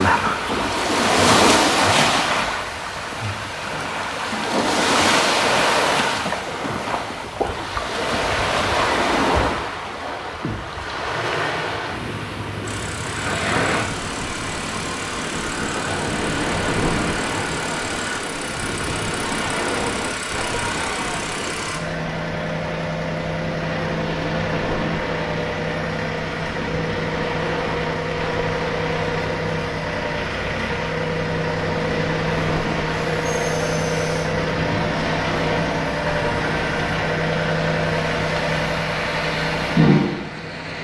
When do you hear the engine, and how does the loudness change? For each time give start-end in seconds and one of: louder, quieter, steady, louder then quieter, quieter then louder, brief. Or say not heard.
12.6-40.7 louder.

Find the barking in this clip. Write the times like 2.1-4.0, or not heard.
not heard.